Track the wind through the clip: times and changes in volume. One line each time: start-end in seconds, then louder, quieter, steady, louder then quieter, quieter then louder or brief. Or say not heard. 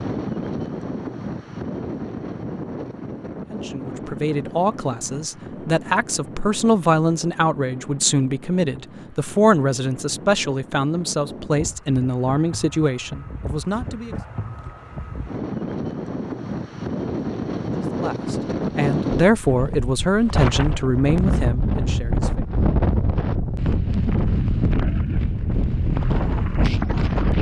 0.0-27.3 quieter then louder.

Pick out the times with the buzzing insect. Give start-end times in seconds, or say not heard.
not heard.